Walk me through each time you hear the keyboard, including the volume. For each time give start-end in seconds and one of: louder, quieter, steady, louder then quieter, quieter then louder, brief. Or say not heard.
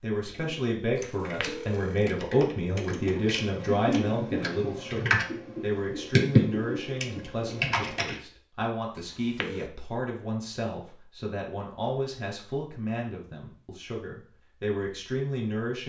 0.2-8.2 louder.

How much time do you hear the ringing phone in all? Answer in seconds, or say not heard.
2 s.